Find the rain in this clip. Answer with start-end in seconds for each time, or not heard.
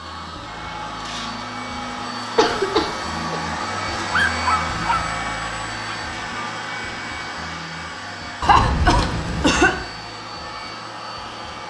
not heard.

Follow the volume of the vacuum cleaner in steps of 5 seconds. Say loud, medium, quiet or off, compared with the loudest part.
loud, loud, medium.